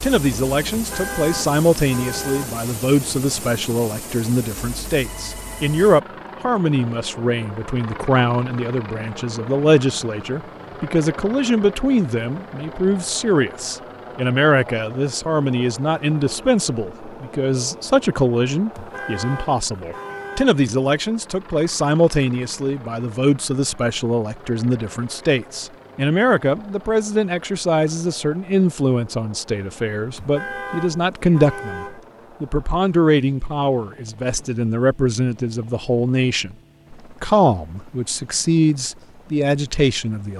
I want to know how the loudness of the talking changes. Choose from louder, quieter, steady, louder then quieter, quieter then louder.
steady.